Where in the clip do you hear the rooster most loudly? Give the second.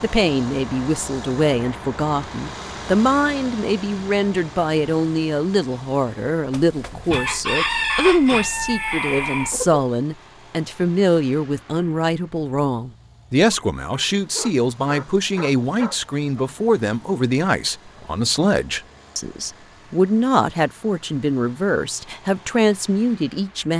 8 s.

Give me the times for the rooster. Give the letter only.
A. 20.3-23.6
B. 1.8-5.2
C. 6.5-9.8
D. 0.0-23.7
C.